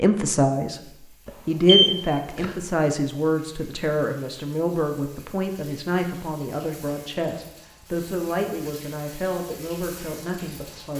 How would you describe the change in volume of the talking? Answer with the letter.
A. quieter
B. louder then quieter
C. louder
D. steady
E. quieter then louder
A.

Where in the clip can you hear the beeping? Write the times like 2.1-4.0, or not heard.
1.2-2.5.